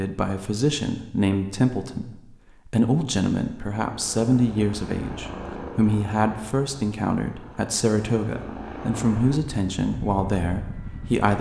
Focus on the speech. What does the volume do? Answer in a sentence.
The volume of the speech stays about the same.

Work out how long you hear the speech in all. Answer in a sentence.
You can hear the speech for 11 seconds altogether.